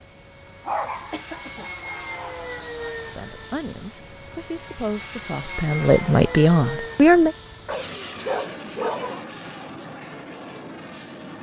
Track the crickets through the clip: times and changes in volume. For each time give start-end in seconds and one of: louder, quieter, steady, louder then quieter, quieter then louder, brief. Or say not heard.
2.0-11.3 quieter.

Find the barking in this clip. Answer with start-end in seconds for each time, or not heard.
0.7-2.4, 7.7-9.2.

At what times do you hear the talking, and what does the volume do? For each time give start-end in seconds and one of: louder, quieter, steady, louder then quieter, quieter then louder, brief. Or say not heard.
3.0-7.3 louder.